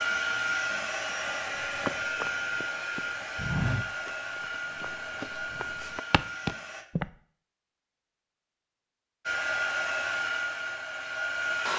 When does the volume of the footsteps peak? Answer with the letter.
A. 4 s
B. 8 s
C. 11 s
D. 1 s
A.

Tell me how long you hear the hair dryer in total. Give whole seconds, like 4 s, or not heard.
9 s.